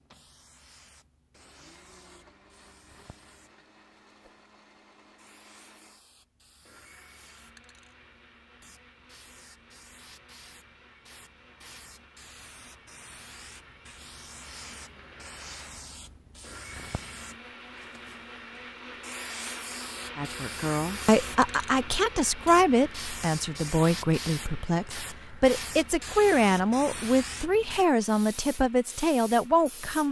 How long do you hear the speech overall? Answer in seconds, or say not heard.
10 s.